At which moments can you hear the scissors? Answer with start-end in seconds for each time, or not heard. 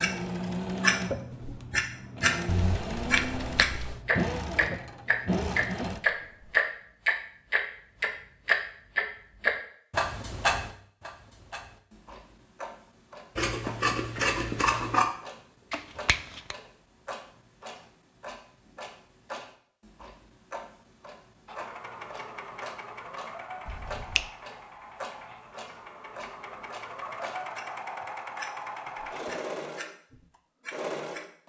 13.3-15.1.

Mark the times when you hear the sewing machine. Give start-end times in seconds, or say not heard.
0.0-6.6, 21.4-31.3.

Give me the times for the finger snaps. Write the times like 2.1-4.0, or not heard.
2.5-4.0, 15.7-16.6, 23.6-24.3.